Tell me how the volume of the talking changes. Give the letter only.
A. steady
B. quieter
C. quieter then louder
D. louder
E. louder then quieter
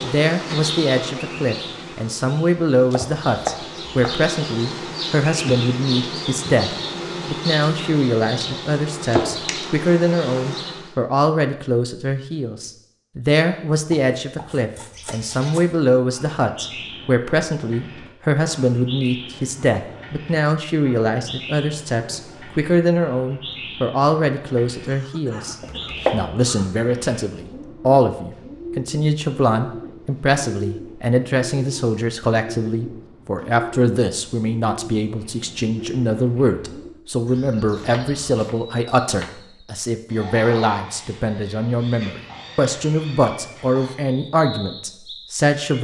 A.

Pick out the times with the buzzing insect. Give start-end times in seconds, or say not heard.
0.0-10.9.